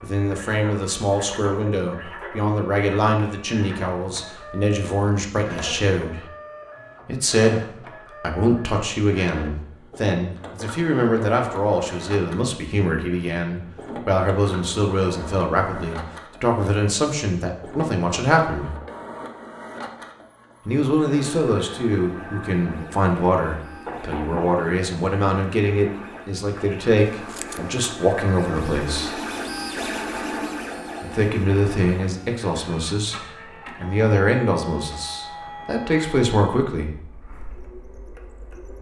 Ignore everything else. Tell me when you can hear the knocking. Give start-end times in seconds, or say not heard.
23.9-24.6.